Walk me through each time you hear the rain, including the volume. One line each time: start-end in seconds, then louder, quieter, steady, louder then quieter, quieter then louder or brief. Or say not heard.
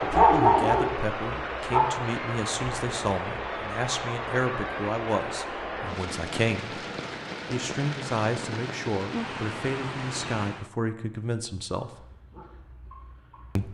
0.0-10.7 steady.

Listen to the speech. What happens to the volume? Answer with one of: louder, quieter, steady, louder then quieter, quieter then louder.
steady.